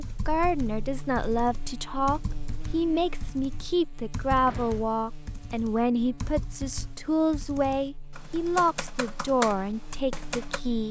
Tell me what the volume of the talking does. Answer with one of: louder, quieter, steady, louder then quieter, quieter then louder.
steady.